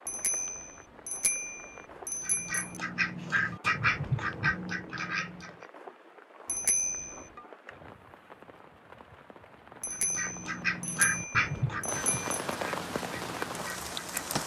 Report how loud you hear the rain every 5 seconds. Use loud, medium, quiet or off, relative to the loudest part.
quiet, quiet, loud.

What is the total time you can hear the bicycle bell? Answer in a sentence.
You can hear the bicycle bell for 6 seconds altogether.